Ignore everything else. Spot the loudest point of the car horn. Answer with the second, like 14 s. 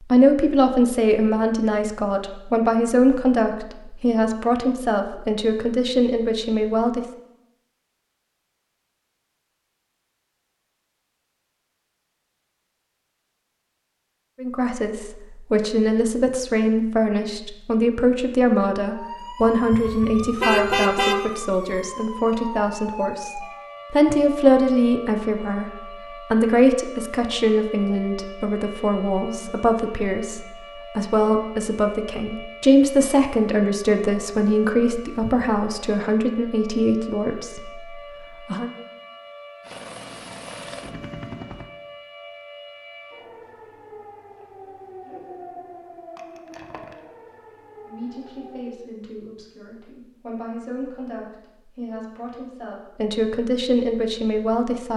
21 s.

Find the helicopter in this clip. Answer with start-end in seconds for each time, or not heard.
39.6-41.7.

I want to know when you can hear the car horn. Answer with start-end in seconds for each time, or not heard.
19.4-21.2, 34.9-35.6.